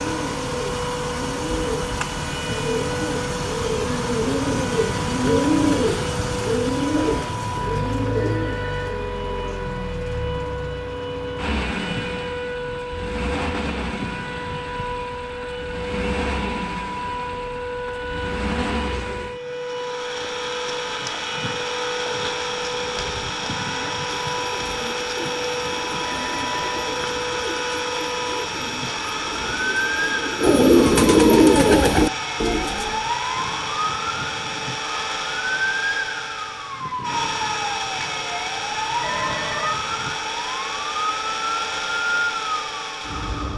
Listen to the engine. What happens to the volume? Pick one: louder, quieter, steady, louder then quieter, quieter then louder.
steady.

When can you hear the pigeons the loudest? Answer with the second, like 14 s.
31 s.